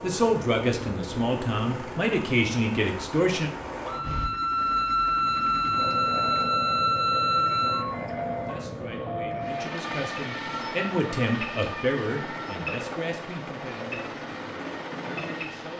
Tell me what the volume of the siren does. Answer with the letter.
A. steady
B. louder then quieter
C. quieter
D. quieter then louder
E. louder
C.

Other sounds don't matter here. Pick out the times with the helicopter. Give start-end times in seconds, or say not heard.
0.0-15.7.